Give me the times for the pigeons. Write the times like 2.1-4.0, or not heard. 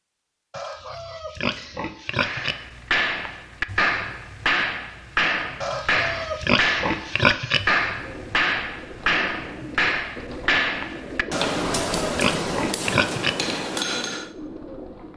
8.0-15.1.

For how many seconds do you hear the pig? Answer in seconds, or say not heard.
6 s.